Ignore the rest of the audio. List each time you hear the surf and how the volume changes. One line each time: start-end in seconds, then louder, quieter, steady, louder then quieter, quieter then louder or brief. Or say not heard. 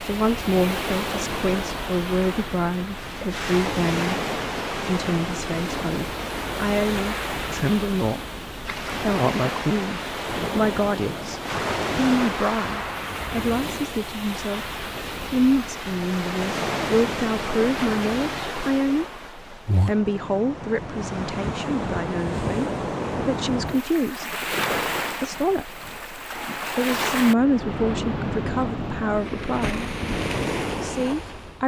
0.0-31.6 steady.